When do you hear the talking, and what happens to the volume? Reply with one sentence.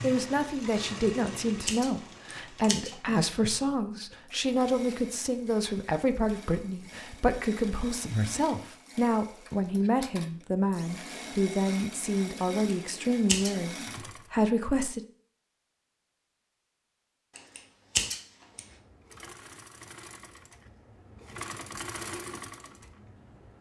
The talking can be heard from 0.0 to 15.0 s, at a steady volume.